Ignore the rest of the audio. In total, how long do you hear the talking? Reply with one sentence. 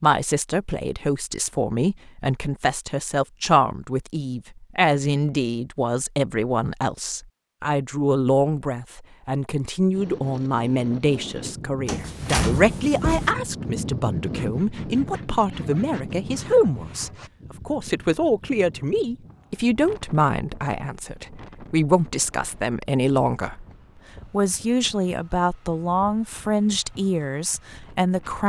You can hear the talking for 28 seconds altogether.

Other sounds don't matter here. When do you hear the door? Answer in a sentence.
You can hear the door from 11.8 to 13.3 s.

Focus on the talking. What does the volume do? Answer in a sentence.
The volume of the talking stays about the same.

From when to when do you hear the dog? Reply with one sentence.
You can't hear the dog here.